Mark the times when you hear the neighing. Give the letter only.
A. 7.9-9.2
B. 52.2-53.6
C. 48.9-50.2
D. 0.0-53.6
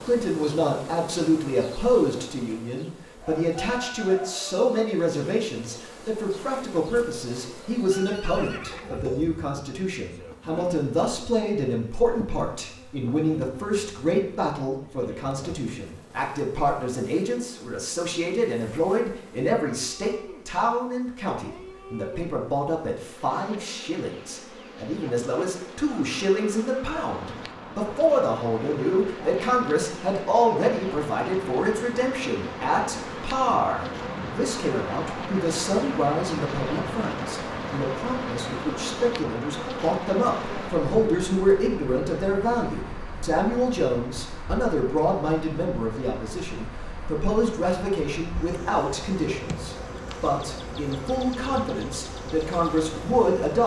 A.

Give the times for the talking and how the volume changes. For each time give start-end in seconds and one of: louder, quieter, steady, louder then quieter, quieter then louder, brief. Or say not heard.
0.0-53.6 steady.